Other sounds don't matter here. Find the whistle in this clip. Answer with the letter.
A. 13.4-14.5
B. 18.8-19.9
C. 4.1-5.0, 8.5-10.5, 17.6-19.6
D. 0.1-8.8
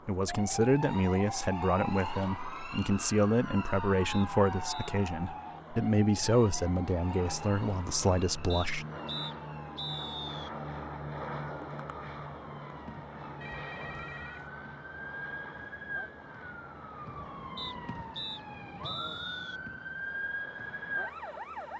C.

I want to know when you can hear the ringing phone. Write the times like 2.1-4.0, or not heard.
13.4-14.5.